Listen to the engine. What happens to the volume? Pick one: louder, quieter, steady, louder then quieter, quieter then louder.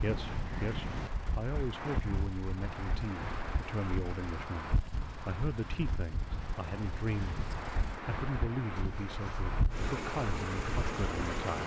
louder.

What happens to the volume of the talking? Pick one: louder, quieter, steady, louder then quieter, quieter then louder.
steady.